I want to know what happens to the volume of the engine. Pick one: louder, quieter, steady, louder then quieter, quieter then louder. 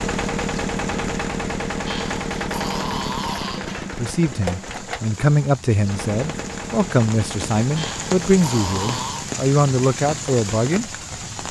quieter.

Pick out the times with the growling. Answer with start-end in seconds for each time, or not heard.
1.9-3.9, 7.8-9.3.